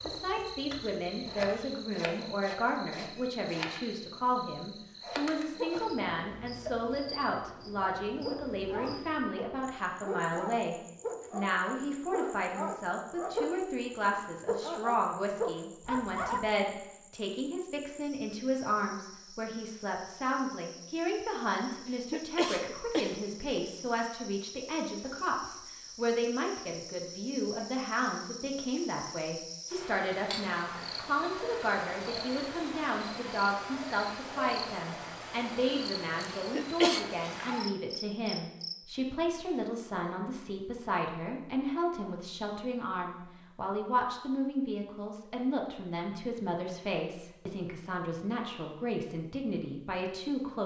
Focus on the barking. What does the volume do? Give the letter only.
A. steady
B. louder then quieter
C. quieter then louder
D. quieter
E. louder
E.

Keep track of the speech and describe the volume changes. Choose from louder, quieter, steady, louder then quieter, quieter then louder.
steady.